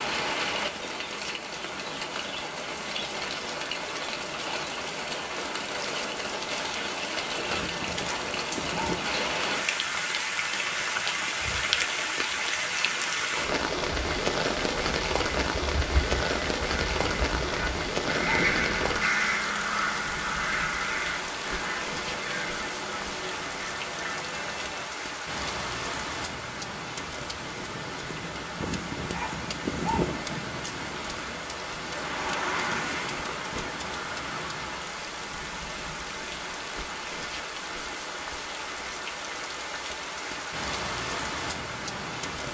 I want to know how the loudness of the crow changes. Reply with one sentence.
The volume of the crow goes up, then down.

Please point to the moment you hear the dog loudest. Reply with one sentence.
The volume of the dog peaks at 30 seconds.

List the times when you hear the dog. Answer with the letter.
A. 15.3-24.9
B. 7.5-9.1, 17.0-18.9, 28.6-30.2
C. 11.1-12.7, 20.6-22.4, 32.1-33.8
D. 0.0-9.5
B.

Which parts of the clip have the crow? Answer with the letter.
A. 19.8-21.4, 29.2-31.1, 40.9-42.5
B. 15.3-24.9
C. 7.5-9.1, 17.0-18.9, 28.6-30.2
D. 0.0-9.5
B.